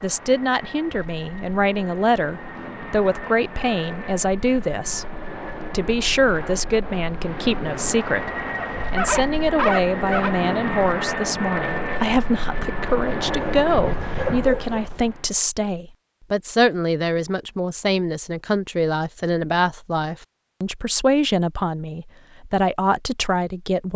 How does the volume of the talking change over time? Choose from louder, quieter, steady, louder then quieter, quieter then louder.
steady.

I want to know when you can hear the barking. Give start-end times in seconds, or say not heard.
8.6-10.3, 13.1-14.8.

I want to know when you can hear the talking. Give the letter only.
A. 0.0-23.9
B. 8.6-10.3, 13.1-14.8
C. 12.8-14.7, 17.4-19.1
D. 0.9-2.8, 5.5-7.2
A.